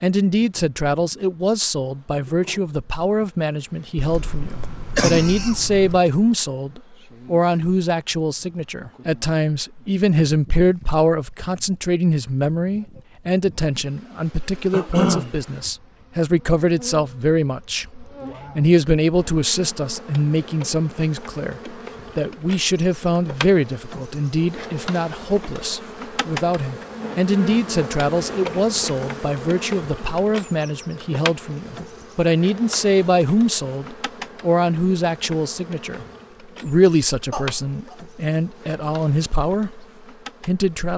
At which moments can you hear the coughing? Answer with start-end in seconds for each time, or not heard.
4.0-6.0, 14.7-15.3, 37.3-38.0.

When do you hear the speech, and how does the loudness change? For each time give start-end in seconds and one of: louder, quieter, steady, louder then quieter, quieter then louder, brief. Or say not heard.
0.0-39.9 steady
40.5-40.9 brief.